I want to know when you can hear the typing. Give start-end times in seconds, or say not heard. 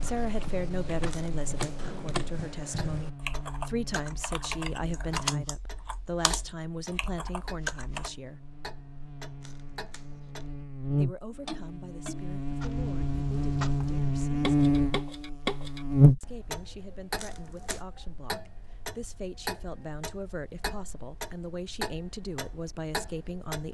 0.0-8.1.